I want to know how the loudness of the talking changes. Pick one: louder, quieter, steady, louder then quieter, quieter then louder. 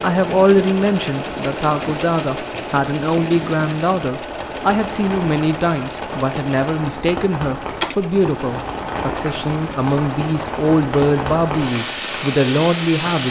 steady.